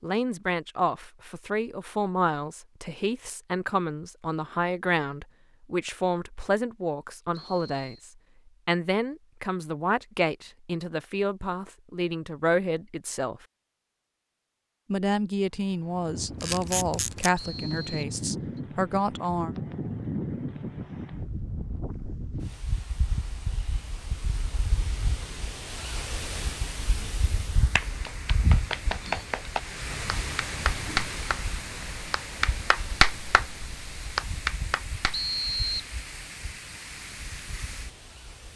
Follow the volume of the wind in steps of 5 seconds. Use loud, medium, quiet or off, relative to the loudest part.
off, off, off, loud, loud, loud, loud, medium.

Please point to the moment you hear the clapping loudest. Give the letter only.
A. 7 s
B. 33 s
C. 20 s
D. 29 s
B.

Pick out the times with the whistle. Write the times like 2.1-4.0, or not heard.
7.3-8.1, 17.4-18.6, 35.1-35.9.